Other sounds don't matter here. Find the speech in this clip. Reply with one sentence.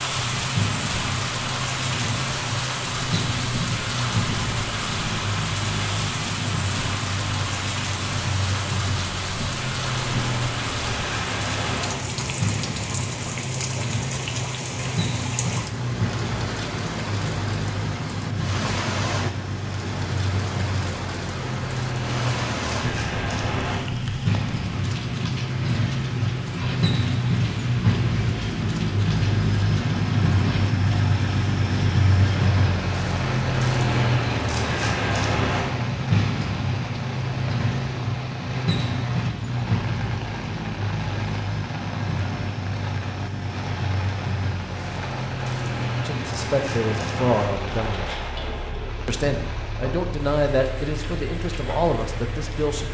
You can hear the speech from 46.0 to 48.0 s and from 49.0 to 52.8 s.